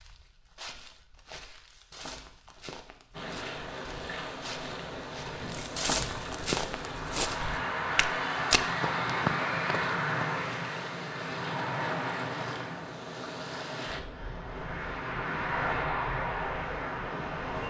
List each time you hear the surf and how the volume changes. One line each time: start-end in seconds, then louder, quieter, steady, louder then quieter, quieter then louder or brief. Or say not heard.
3.1-17.6 steady.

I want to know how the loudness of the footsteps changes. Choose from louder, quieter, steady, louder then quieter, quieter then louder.
louder.